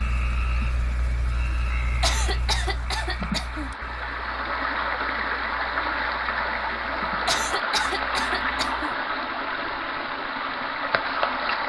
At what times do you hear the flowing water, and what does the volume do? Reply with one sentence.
The flowing water can be heard from 0.0 to 11.6 s, getting louder.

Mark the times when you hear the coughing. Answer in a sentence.
You can hear the coughing from 2.0 to 3.7 s and from 7.2 to 8.9 s.